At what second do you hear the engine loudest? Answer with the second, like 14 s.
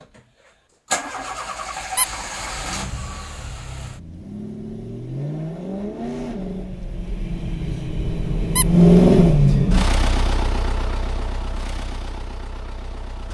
9 s.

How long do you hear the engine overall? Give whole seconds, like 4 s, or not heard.
13 s.